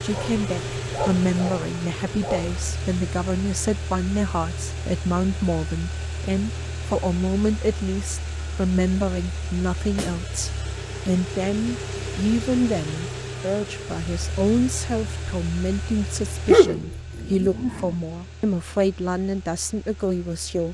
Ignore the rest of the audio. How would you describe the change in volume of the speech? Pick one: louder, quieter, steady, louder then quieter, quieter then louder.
steady.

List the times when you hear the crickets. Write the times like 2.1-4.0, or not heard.
not heard.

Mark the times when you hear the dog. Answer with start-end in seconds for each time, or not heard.
0.1-2.8, 16.4-17.9.